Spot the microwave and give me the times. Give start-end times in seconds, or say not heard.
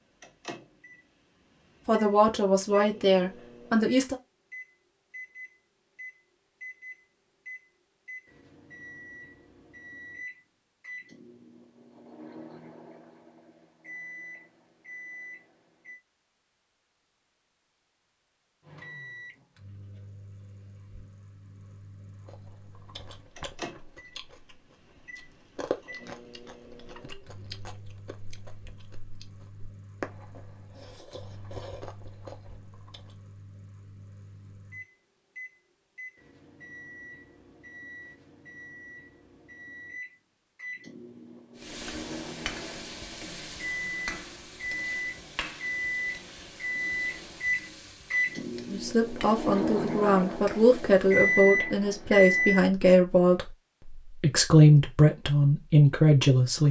0.0-16.0, 18.6-52.6.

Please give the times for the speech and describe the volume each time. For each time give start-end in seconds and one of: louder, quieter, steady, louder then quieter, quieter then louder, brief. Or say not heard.
1.9-4.2 brief
48.7-56.6 louder.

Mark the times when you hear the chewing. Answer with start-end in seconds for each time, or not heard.
22.2-33.1.